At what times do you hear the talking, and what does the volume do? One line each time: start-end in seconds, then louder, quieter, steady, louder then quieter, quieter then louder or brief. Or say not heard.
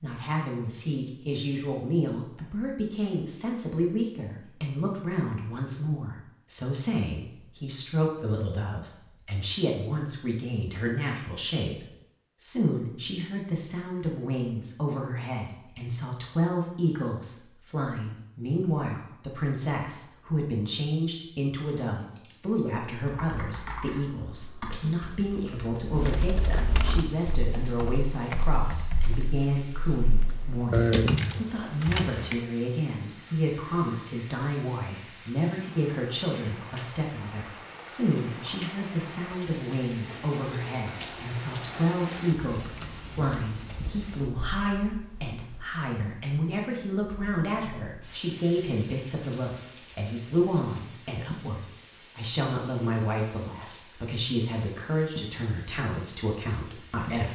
0.0-57.3 steady.